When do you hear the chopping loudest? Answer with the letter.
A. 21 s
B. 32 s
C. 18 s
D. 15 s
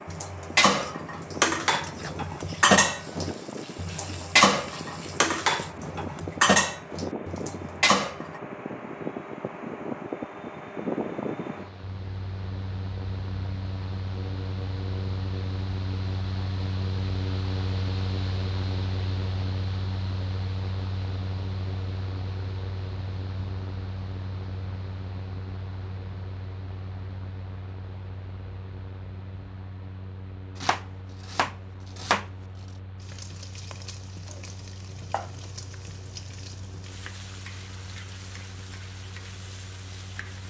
B.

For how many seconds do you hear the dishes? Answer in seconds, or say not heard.
8 s.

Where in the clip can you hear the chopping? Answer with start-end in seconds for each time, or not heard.
30.6-32.3.